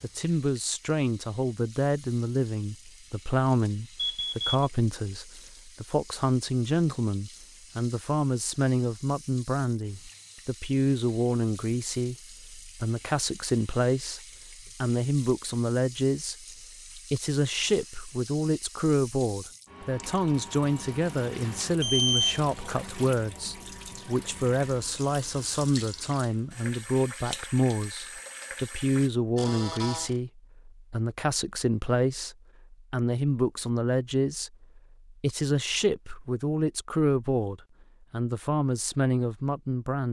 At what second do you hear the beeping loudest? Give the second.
22 s.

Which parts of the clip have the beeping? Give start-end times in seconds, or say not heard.
4.0-4.7, 21.8-22.9, 29.4-30.1.